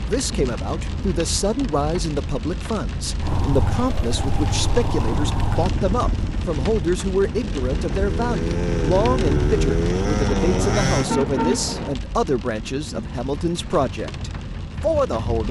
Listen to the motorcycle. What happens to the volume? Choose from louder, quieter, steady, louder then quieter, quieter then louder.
quieter then louder.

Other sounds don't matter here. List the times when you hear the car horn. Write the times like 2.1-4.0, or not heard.
10.3-11.9.